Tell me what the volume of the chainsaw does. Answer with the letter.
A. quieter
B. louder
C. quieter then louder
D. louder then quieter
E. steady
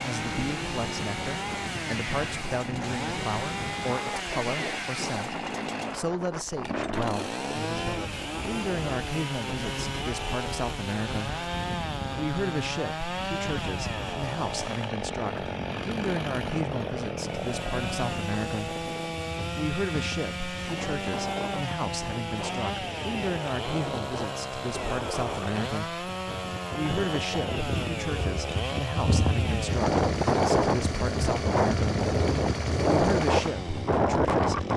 E.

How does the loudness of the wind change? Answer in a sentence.
The volume of the wind goes up.